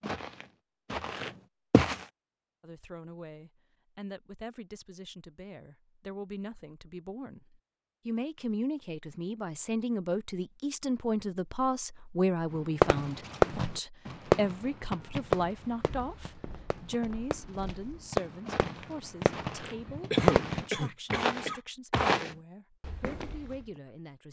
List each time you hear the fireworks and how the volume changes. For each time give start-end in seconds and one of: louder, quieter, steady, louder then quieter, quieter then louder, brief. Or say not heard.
12.8-20.6 quieter then louder.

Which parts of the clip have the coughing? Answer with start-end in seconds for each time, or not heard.
19.6-21.6.